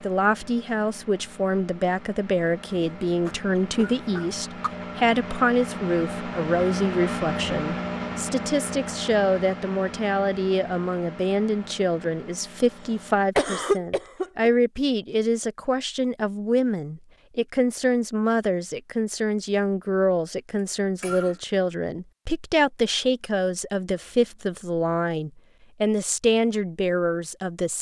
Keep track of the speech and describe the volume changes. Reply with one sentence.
The volume of the speech stays about the same.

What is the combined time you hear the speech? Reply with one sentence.
The speech can be heard for 28 seconds in total.